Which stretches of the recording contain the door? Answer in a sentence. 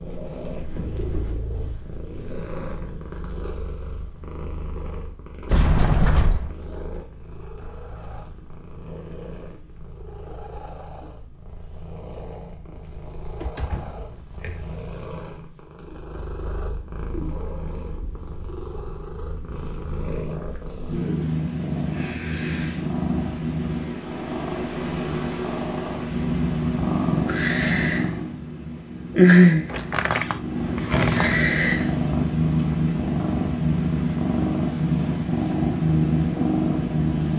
You can hear the door from 5.5 to 6.5 s, from 13.2 to 14.7 s and from 29.7 to 31.4 s.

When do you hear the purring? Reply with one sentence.
You can hear the purring from 0.0 to 37.3 s.